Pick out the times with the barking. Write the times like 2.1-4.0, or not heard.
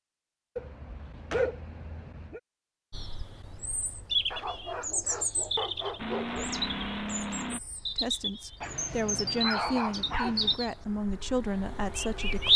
0.6-2.4, 4.3-6.5, 8.6-10.6.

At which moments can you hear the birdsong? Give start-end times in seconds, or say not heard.
2.9-12.5.